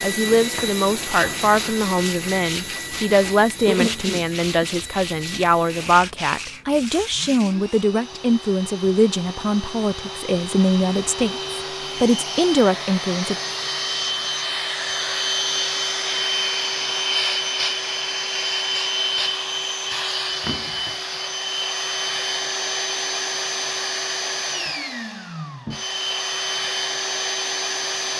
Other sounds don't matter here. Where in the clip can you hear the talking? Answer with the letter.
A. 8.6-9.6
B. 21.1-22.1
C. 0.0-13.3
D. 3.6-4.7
C.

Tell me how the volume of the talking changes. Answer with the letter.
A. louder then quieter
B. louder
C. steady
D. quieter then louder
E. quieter
C.